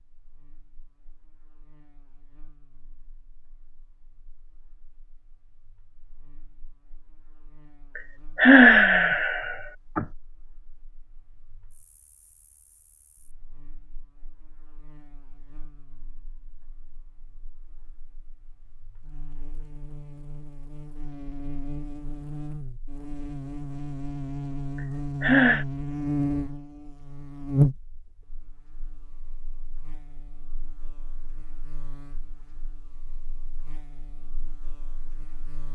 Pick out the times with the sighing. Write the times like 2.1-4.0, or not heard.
8.0-10.1, 25.2-25.6.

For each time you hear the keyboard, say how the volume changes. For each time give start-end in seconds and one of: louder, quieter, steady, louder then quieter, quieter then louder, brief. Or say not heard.
not heard.